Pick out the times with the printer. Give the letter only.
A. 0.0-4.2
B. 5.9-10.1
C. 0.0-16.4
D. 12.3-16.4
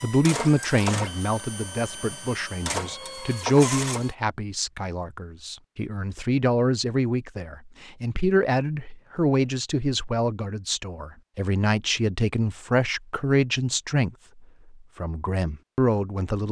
A.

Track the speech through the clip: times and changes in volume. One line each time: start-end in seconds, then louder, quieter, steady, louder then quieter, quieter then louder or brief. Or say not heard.
0.0-16.4 steady.